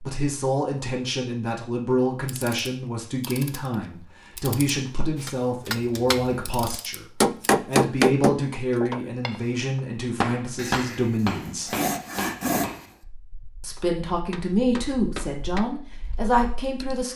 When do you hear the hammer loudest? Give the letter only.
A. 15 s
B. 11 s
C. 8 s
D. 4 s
C.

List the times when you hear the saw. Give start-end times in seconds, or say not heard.
10.6-12.8.